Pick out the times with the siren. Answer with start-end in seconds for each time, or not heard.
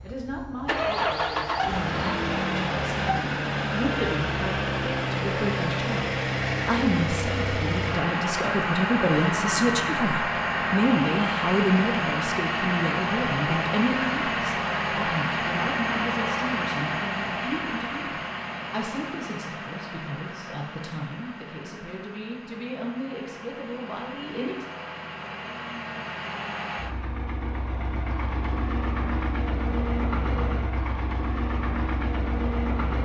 not heard.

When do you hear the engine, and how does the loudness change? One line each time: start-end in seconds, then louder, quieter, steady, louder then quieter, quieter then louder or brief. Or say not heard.
0.0-33.0 quieter then louder.